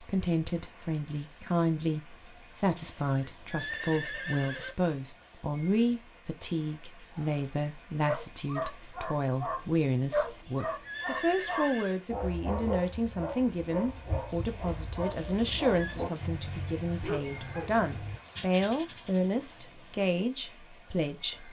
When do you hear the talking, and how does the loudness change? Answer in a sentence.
You can hear the talking from 0.0 to 21.4 s, at a steady volume.